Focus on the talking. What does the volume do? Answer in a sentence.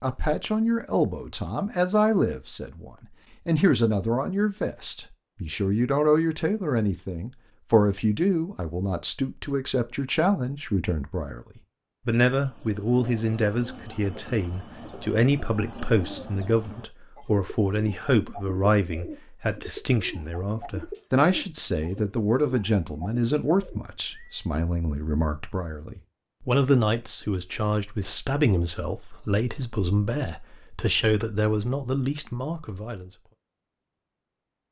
The volume of the talking stays about the same.